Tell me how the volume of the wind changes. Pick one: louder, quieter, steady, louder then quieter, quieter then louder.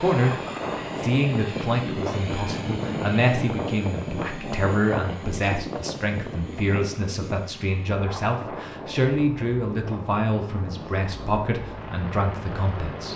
quieter.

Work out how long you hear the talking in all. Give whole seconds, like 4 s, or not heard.
13 s.